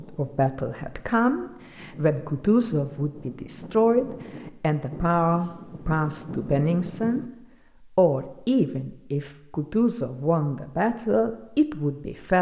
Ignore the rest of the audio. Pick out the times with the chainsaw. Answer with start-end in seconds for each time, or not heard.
not heard.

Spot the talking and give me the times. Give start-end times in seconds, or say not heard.
0.0-7.2, 8.0-12.3.